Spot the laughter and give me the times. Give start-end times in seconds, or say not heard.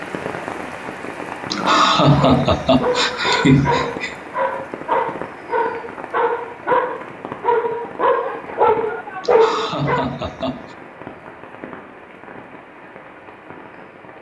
1.5-4.2, 9.2-10.8.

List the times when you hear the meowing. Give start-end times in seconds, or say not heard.
not heard.